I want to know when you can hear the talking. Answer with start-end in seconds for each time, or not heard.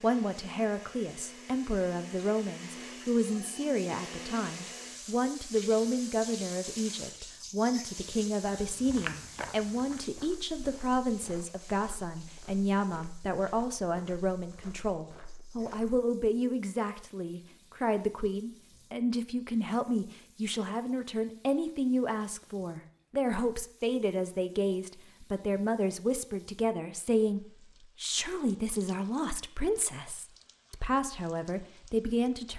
0.0-32.5.